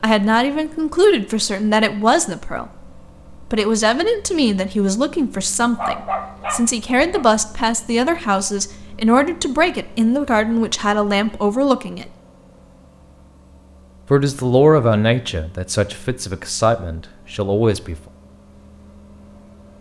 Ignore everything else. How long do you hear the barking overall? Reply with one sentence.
The barking can be heard for 2 seconds in total.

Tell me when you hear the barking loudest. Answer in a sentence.
The volume of the barking peaks at 6 seconds.